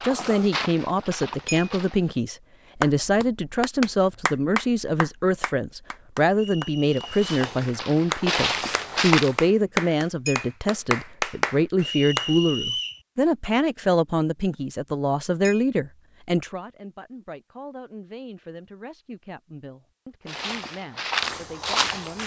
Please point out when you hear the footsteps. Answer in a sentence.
You can hear the footsteps from 0.0 to 2.1 s, from 7.0 to 9.4 s and from 20.2 to 22.2 s.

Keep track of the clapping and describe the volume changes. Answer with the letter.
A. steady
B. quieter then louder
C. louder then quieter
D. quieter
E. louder
B.